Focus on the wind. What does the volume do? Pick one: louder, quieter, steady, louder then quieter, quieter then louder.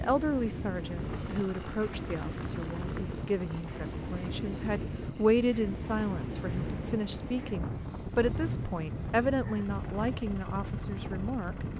steady.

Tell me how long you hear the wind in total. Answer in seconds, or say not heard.
12 s.